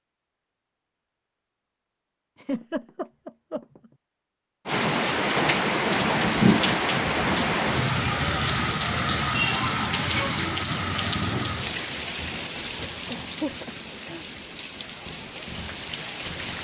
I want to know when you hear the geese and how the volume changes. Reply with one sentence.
You can't hear the geese here.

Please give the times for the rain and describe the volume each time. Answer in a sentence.
You can hear the rain from 4.7 to 16.5 s, getting quieter.